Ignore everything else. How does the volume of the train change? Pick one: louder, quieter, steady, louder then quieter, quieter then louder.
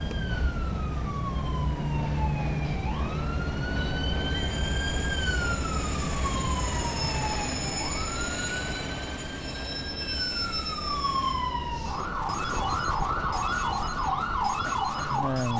louder then quieter.